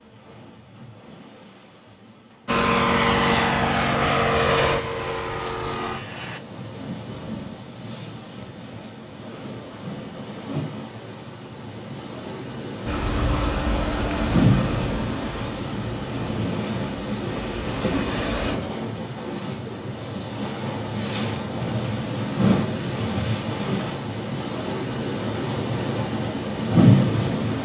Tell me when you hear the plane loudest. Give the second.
3 s.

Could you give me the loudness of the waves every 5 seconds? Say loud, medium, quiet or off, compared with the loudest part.
quiet, quiet, medium, medium, medium, loud.